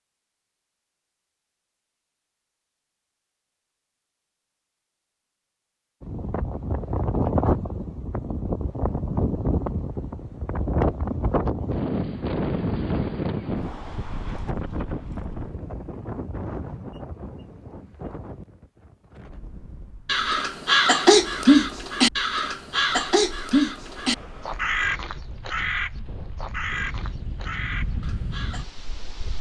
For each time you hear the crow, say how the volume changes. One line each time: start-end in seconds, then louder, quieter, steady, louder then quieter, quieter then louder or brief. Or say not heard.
20.1-28.6 quieter.